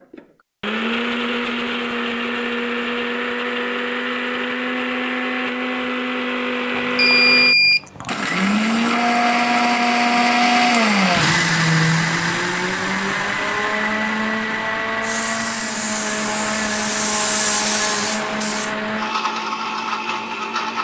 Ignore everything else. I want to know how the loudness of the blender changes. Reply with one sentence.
The volume of the blender goes up, then down.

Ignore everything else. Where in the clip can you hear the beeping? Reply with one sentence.
You can hear the beeping from 6.8 to 8.2 s.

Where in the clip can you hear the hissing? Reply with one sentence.
The hissing can be heard from 15.0 to 18.8 s.